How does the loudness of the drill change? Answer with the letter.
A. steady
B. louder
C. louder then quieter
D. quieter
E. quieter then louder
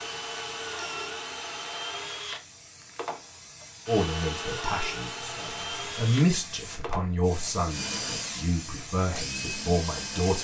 A.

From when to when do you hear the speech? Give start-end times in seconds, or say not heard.
3.9-10.3.